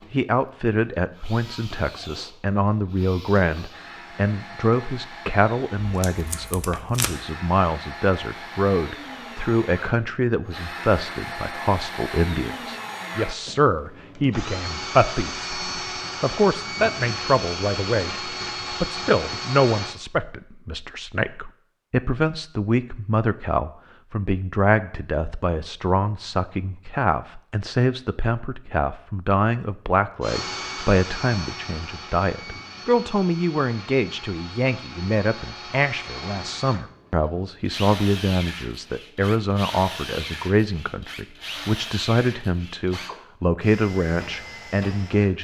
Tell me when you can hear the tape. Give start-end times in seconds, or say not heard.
5.8-7.2.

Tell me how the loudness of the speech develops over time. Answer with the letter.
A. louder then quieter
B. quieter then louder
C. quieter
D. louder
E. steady
E.